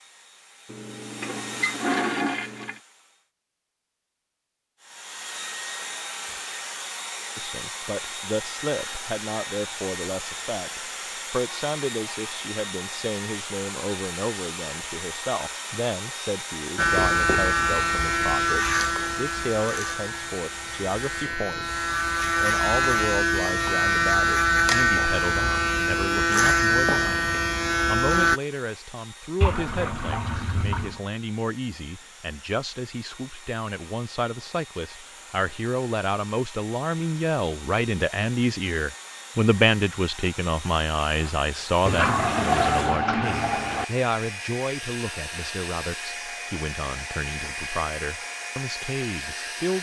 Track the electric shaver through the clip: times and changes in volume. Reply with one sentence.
The electric shaver can be heard from 16.8 to 28.4 s, getting quieter then louder.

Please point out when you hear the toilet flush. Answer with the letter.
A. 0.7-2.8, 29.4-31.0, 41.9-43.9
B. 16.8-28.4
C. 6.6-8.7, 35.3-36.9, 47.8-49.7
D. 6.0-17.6
A.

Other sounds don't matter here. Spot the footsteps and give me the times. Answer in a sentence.
You can't hear the footsteps here.